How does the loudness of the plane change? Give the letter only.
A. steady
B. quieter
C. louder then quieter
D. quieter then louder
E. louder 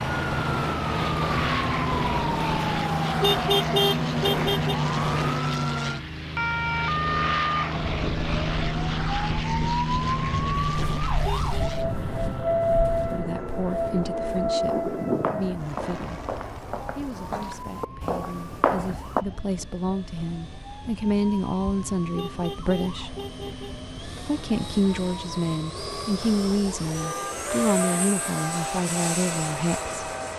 D.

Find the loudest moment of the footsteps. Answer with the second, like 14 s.
19 s.